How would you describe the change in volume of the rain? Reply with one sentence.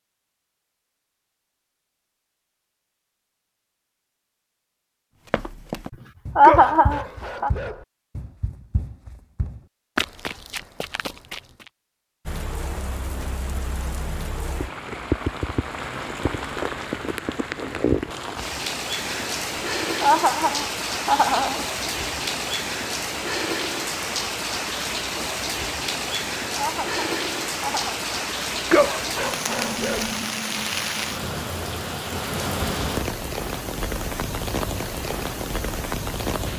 The loudness of the rain stays about the same.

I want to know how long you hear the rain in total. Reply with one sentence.
You can hear the rain for 24 seconds altogether.